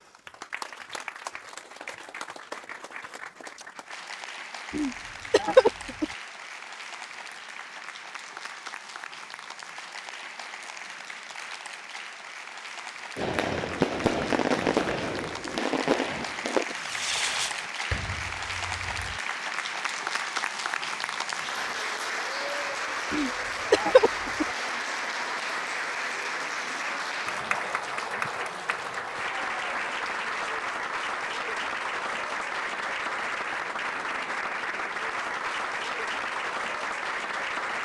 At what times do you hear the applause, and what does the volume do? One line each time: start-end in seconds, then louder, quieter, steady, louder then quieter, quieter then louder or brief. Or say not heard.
0.0-37.7 louder.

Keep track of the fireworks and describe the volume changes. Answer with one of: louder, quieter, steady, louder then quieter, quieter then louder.
quieter.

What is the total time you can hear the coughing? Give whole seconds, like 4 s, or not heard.
3 s.